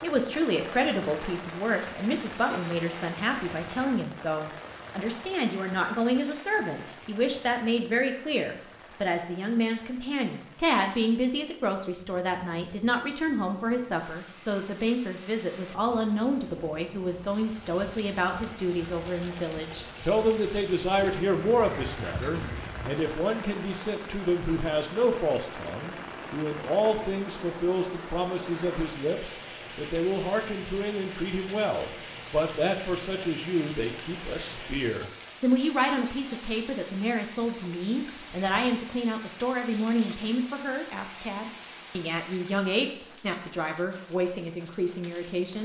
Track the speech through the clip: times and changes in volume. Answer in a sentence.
You can hear the speech from 0.0 to 45.5 s, at a steady volume.